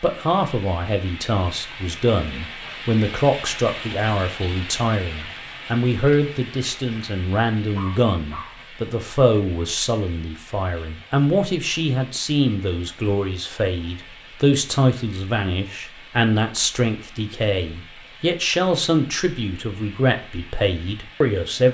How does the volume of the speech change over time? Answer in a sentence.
The loudness of the speech stays about the same.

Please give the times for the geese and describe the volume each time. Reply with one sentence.
The geese can't be heard in this clip.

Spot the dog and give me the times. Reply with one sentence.
The dog can be heard from 7.8 to 8.7 s.